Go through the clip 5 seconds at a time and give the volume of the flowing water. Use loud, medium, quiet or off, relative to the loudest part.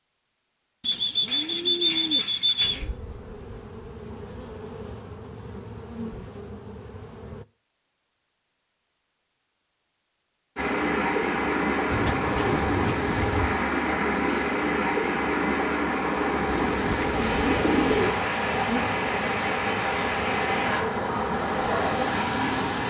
off, off, loud, loud, loud.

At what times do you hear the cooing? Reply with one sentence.
You can hear the cooing from 0.8 to 2.9 s, from 11.9 to 13.7 s and from 16.4 to 18.1 s.